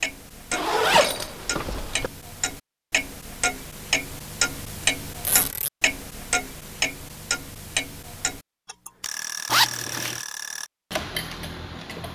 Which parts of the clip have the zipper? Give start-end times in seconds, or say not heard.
0.5-2.1, 5.2-5.7, 9.4-10.2.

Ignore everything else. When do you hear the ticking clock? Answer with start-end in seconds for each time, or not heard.
0.0-12.1.